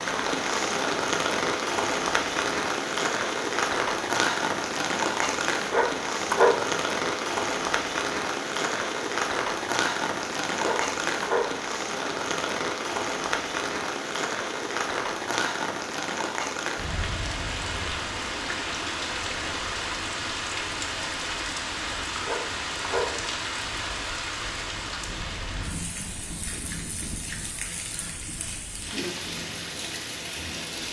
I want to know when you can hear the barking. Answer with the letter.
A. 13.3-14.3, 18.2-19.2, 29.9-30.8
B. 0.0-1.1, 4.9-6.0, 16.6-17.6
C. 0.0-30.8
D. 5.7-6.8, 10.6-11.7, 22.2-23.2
D.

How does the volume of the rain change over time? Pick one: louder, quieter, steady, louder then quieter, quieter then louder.
quieter.